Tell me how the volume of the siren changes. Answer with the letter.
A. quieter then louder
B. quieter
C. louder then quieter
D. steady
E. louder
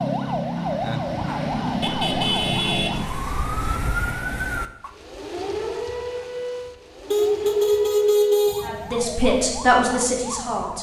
B.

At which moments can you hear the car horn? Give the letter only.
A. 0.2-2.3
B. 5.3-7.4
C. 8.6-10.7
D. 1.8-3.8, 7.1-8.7
D.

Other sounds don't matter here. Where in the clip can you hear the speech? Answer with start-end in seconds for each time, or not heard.
8.6-10.7.